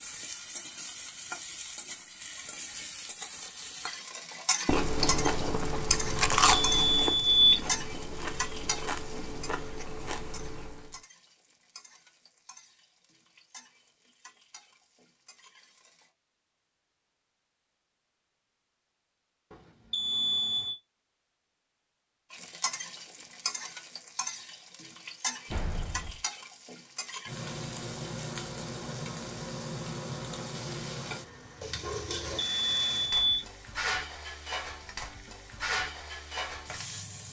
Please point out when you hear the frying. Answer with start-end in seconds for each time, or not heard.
0.0-16.1, 22.3-37.2.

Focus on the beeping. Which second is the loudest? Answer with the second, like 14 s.
7 s.